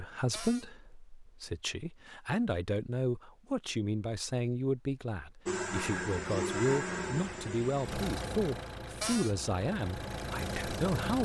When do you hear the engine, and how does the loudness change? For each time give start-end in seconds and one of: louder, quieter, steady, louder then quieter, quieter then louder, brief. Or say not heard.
5.5-11.2 quieter then louder.